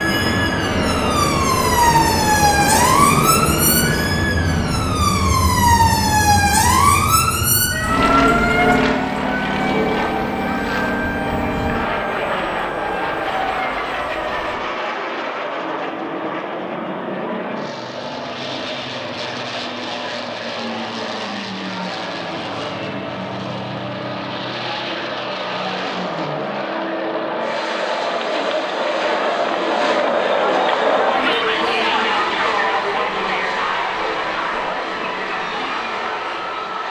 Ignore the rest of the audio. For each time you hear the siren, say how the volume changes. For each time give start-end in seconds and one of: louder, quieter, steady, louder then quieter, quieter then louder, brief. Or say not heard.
0.0-14.6 quieter.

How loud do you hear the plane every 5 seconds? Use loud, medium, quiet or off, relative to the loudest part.
loud, loud, loud, medium, medium, medium, medium, medium.